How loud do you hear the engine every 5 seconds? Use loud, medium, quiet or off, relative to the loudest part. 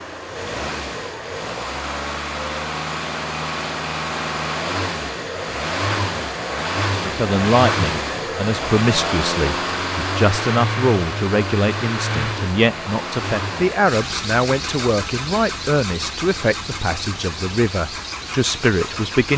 loud, loud, loud, medium.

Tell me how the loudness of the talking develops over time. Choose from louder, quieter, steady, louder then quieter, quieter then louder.
steady.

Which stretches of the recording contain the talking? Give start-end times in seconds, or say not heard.
7.0-19.3.